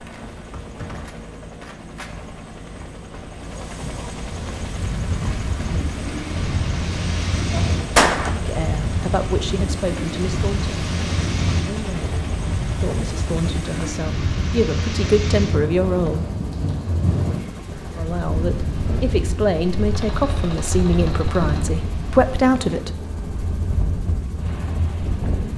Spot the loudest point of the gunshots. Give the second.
8 s.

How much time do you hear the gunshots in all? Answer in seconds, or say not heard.
3 s.